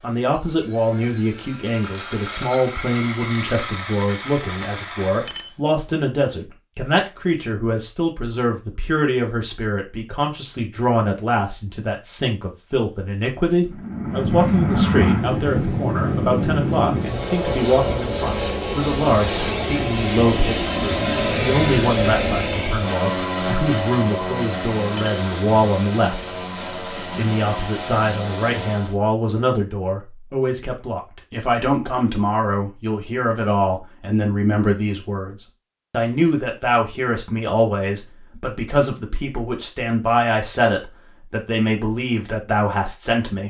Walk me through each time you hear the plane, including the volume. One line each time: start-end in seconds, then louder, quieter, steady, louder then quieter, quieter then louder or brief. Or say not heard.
0.0-5.5 louder
13.6-28.9 quieter.